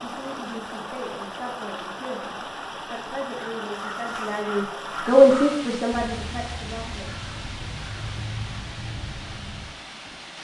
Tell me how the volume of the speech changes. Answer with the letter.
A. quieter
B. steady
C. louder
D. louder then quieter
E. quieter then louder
D.